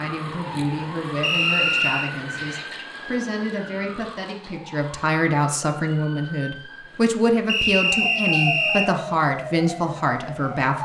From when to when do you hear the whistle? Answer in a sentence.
The whistle can be heard from 1.2 to 2.1 s and from 7.5 to 8.9 s.